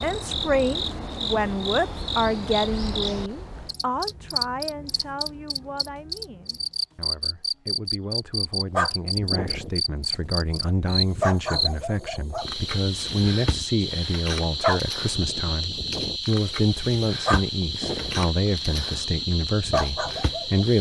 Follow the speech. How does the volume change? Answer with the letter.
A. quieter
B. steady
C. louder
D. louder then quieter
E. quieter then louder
E.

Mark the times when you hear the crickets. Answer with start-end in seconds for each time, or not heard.
0.0-20.7.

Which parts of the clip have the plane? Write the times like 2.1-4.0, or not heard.
not heard.